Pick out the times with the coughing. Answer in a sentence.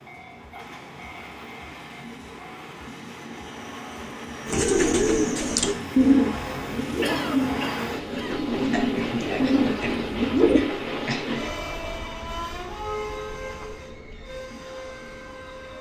The coughing can be heard from 7.0 to 8.5 s.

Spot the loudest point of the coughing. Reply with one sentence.
The volume of the coughing peaks at 7 seconds.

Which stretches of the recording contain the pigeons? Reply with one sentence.
The pigeons can be heard from 4.5 to 10.7 s.